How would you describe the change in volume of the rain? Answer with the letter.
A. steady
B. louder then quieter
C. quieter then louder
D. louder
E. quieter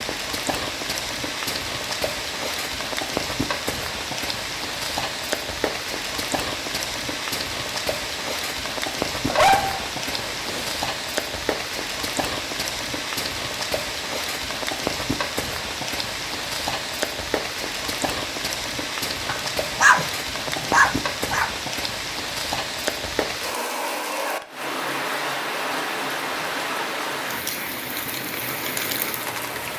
A.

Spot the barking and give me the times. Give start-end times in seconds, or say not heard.
9.2-10.8, 19.2-20.1, 20.7-21.5.